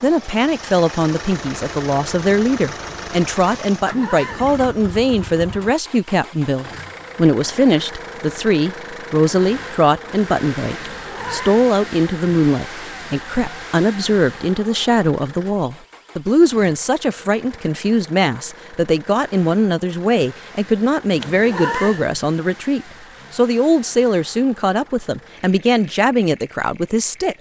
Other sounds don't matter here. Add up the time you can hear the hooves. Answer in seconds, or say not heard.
not heard.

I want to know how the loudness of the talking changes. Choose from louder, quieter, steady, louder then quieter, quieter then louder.
steady.